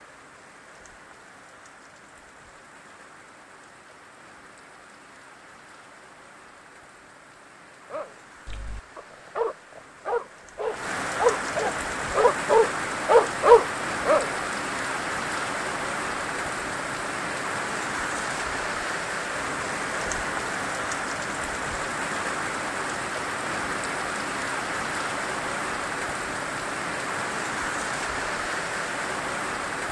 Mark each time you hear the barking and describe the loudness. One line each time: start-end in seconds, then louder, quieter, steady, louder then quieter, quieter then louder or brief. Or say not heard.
7.9-14.2 louder.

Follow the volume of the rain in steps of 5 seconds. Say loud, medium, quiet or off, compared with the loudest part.
quiet, quiet, loud, loud, loud, loud.